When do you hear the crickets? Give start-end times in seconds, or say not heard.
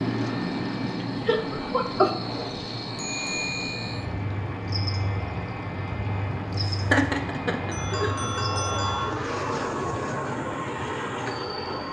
0.0-11.8.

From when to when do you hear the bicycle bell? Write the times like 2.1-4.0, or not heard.
3.0-4.0, 7.7-9.1.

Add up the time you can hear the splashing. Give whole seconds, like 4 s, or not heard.
not heard.